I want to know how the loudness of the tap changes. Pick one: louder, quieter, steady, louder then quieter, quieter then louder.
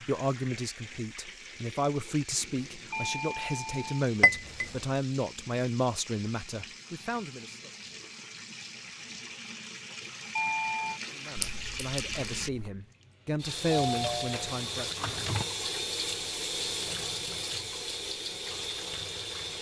louder.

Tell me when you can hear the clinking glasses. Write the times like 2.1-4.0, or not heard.
4.2-4.8, 11.3-12.2.